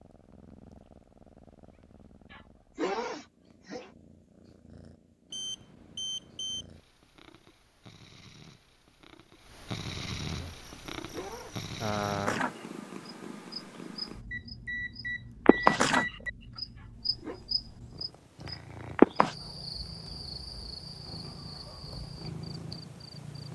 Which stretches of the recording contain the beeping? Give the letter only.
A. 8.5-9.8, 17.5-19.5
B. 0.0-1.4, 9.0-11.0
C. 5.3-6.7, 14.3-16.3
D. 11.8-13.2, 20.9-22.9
C.